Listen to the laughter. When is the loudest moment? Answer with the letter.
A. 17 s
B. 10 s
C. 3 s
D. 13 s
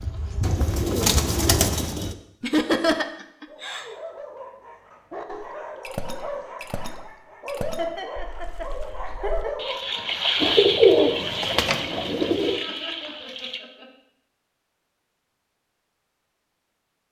C.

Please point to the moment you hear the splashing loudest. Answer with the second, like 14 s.
10 s.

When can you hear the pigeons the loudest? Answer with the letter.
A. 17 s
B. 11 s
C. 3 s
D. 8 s
B.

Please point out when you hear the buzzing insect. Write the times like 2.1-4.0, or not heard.
0.0-1.9.